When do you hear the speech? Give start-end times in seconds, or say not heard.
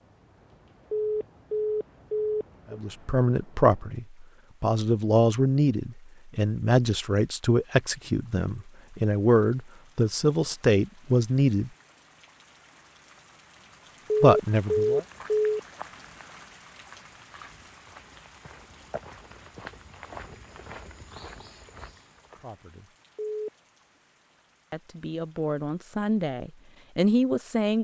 2.7-11.7, 14.2-15.1, 22.4-22.9, 24.7-27.7.